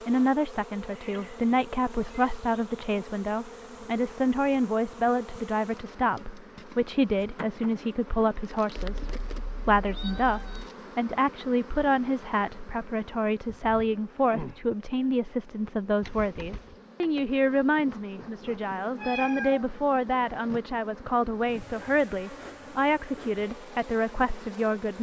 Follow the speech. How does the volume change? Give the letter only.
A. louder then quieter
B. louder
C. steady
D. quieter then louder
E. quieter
C.